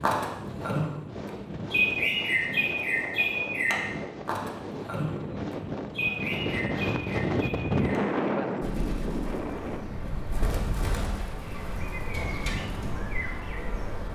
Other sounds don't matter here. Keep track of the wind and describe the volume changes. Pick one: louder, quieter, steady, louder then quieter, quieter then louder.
louder then quieter.